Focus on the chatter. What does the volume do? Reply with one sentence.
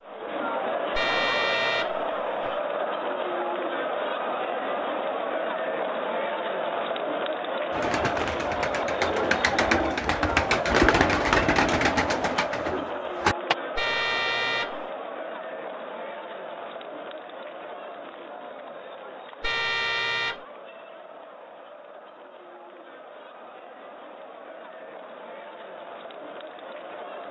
The loudness of the chatter goes down.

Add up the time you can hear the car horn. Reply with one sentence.
The car horn can be heard for 4 seconds in total.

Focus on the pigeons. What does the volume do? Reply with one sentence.
The volume of the pigeons goes up, then down.